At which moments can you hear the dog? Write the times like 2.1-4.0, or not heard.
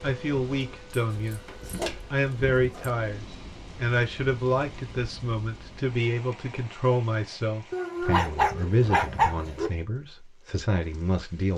0.9-2.9, 7.7-9.7.